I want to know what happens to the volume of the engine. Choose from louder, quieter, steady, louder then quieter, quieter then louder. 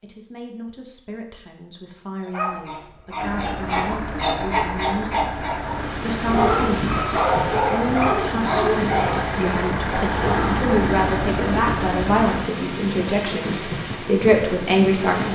louder.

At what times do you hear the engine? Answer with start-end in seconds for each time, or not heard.
3.1-12.5.